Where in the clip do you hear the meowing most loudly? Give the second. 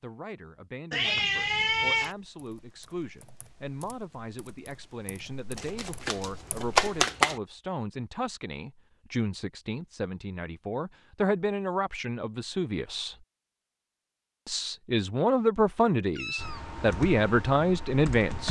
2 s.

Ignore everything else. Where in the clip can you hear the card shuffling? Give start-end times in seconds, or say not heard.
5.5-7.3.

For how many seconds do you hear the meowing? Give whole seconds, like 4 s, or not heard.
2 s.